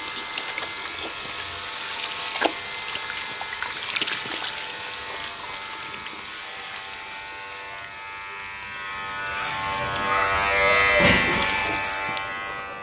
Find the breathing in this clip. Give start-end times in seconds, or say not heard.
not heard.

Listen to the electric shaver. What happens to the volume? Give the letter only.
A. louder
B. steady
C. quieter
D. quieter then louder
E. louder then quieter
A.